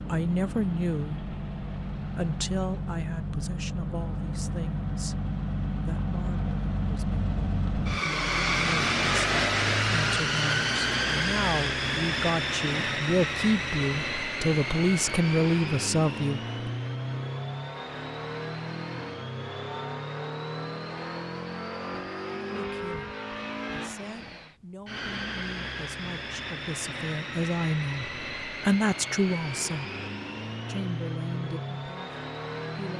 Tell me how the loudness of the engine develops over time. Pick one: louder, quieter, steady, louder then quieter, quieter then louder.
louder then quieter.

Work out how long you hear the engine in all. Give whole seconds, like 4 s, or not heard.
33 s.